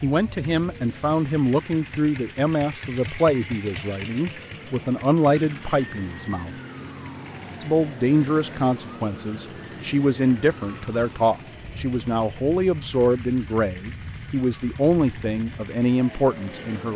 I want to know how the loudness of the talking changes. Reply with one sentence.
The volume of the talking stays about the same.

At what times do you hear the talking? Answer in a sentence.
The talking can be heard from 0.0 to 6.5 s and from 7.6 to 16.9 s.